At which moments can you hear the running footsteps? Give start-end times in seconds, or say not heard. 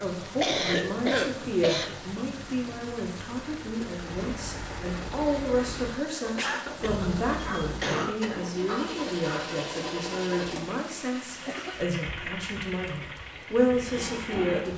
not heard.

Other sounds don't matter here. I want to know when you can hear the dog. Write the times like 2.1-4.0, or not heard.
7.4-9.6.